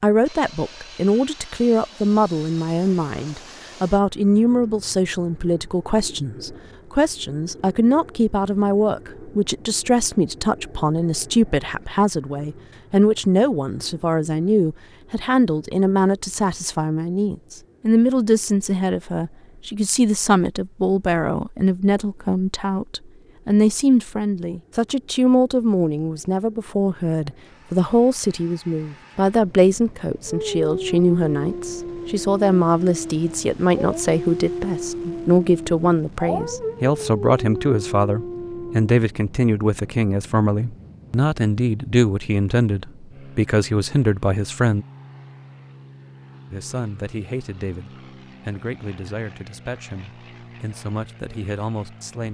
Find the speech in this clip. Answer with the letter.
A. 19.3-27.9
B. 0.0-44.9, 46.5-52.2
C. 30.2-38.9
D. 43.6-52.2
B.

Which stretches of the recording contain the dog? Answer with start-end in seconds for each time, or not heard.
30.2-38.9.